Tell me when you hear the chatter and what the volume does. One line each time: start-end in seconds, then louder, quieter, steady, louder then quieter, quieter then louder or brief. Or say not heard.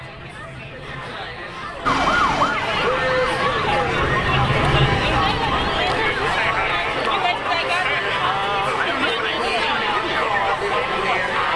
0.0-11.5 louder.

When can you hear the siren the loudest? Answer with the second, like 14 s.
2 s.